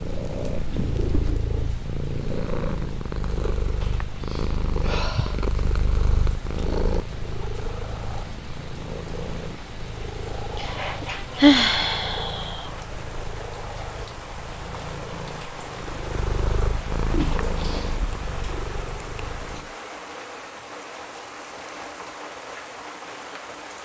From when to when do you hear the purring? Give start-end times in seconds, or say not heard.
0.0-19.8.